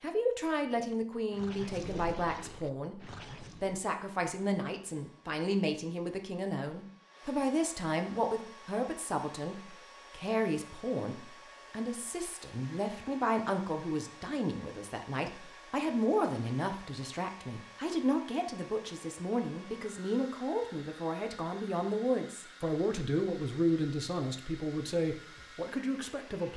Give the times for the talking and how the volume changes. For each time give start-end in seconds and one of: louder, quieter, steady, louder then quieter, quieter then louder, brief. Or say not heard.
0.0-26.5 steady.